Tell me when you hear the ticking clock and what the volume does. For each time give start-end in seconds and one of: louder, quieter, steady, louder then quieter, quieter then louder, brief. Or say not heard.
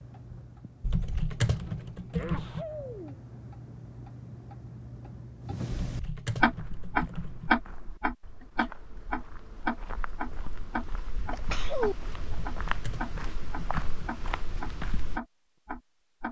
0.0-16.2 louder then quieter.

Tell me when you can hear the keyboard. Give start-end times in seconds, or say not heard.
0.8-2.6, 5.8-7.5, 12.2-13.8.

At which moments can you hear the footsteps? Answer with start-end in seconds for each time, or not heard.
6.5-15.2.